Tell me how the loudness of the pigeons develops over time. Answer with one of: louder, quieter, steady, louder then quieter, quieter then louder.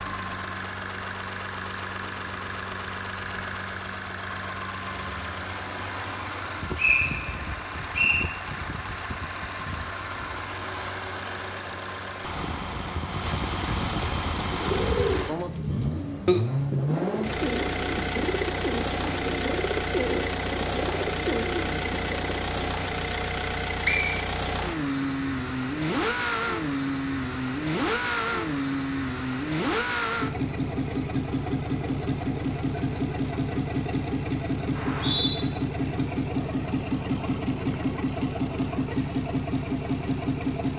steady.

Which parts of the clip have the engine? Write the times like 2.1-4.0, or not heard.
0.0-40.7.